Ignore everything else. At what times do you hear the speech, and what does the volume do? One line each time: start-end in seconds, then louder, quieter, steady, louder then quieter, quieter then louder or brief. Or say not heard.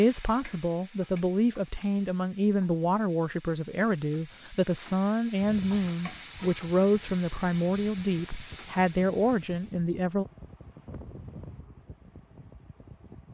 0.0-10.2 steady.